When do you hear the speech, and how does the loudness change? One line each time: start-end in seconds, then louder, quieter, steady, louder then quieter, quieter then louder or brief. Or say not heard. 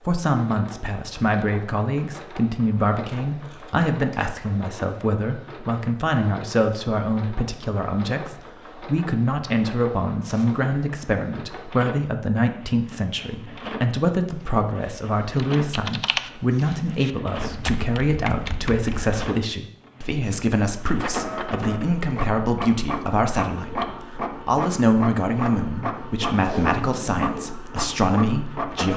0.1-28.9 steady.